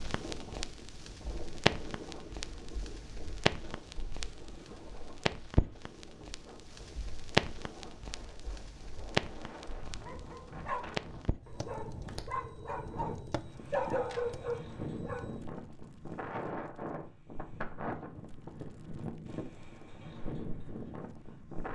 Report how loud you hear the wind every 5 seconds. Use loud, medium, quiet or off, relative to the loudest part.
medium, medium, loud, loud, loud.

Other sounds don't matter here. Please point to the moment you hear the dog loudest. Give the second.
14 s.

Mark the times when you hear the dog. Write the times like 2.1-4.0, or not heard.
10.0-15.3.